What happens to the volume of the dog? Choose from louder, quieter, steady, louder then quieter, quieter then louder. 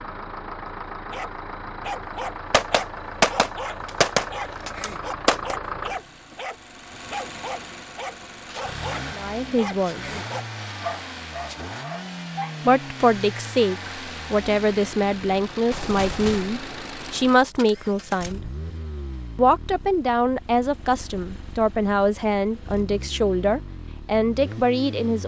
steady.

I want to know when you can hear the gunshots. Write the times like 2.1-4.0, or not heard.
2.5-5.5, 15.7-18.4.